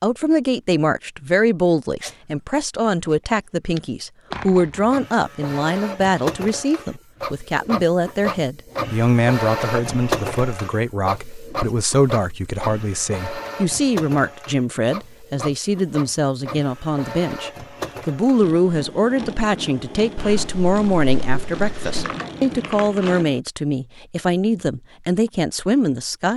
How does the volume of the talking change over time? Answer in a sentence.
The volume of the talking stays about the same.